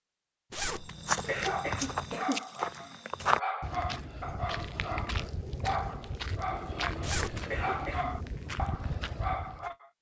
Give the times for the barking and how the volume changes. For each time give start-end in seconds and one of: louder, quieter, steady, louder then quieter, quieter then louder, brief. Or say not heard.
1.4-9.9 steady.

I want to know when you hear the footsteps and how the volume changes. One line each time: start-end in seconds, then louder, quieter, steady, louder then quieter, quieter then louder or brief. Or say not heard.
0.7-9.8 quieter.